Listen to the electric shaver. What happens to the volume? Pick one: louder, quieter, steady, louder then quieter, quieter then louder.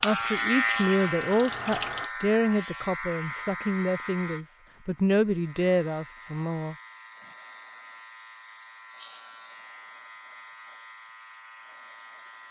quieter.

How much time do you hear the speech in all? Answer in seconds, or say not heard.
7 s.